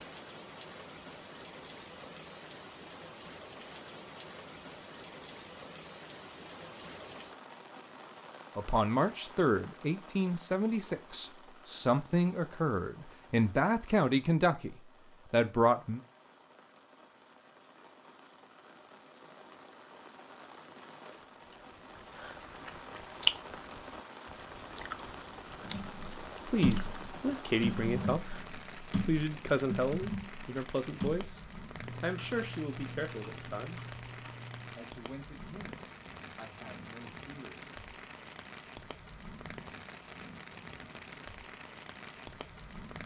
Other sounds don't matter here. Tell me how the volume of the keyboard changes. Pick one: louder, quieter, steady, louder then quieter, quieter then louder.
quieter.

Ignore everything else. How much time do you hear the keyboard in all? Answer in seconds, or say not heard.
9 s.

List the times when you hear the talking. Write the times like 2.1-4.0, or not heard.
8.6-16.0, 26.4-33.8, 34.8-37.6.